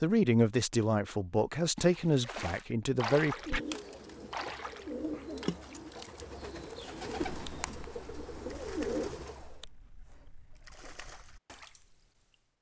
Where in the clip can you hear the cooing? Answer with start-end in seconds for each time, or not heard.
3.2-9.6.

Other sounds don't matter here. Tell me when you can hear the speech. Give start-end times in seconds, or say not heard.
0.0-3.6.